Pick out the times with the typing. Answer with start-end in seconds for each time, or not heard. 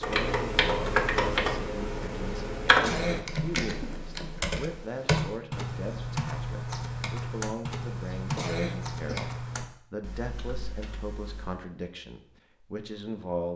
0.0-11.7.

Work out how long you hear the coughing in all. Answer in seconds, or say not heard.
2 s.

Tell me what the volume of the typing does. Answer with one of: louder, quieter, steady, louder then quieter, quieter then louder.
quieter.